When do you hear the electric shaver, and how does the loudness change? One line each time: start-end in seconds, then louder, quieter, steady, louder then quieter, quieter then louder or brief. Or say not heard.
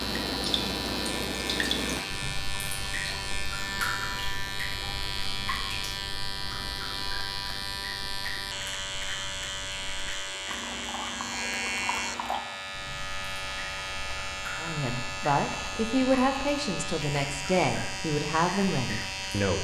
0.0-19.5 steady.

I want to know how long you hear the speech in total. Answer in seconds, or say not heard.
5 s.